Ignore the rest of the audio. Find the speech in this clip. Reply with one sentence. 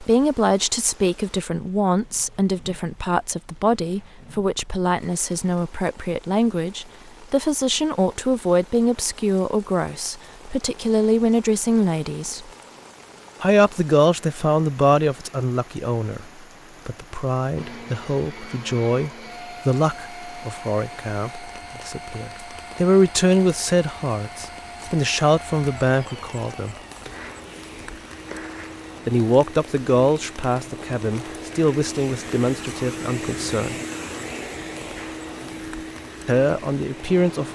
The speech can be heard from 0.0 to 12.5 s, from 13.4 to 16.2 s, from 16.9 to 26.8 s, from 29.1 to 33.8 s and from 36.2 to 37.5 s.